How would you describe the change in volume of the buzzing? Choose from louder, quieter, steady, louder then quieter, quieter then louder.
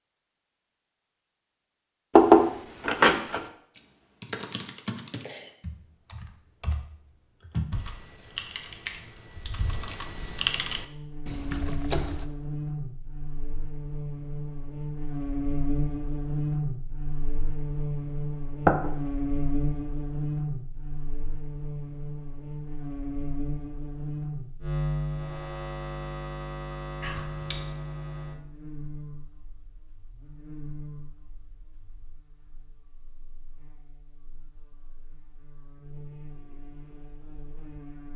quieter.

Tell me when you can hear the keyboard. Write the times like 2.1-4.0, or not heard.
3.7-12.3.